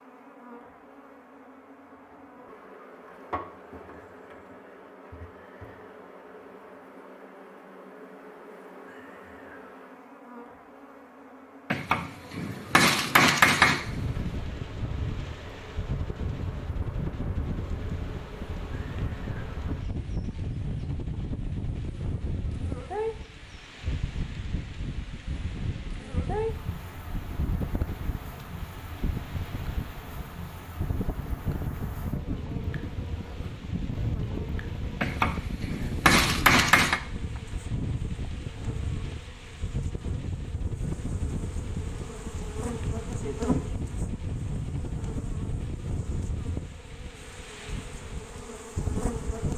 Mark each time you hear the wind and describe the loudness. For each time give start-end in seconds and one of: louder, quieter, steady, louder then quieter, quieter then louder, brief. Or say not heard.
13.8-49.5 steady.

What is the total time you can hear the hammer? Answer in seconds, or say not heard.
5 s.